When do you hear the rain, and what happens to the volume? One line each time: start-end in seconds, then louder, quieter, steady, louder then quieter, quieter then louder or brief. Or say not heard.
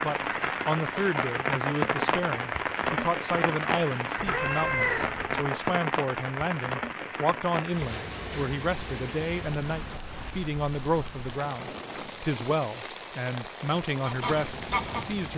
0.0-15.3 quieter.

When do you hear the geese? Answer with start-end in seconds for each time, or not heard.
13.7-15.3.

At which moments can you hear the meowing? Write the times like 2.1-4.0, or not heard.
4.2-5.3.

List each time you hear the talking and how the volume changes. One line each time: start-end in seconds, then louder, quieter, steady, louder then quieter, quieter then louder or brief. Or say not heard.
0.0-15.3 steady.